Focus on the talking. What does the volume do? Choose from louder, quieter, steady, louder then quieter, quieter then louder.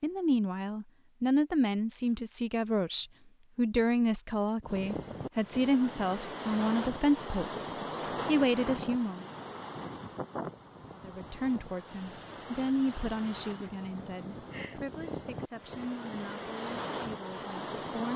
quieter.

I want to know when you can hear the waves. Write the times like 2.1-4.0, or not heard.
4.6-18.1.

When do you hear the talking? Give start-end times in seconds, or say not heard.
0.0-9.2, 10.9-18.1.